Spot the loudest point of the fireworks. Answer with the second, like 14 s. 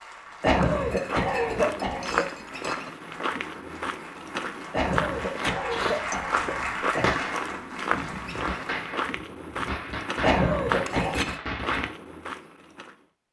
7 s.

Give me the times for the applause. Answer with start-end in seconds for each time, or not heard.
0.0-8.8.